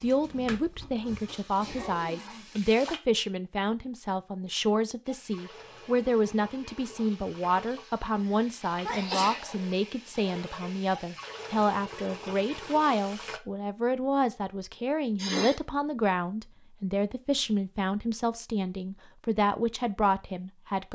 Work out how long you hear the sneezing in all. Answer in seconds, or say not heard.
3 s.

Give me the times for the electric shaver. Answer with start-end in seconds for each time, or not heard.
not heard.